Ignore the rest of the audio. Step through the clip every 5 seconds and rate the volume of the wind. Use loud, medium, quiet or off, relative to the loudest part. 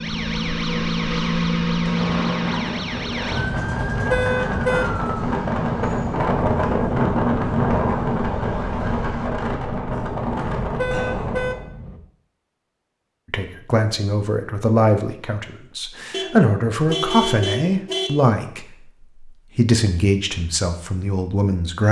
medium, loud, medium, off, off.